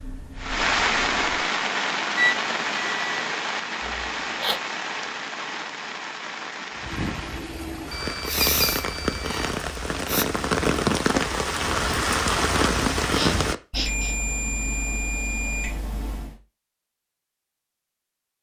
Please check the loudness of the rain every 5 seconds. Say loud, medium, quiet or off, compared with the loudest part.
loud, medium, loud, off.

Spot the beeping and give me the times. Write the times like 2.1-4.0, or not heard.
2.1-3.2, 7.9-9.4, 13.7-16.4.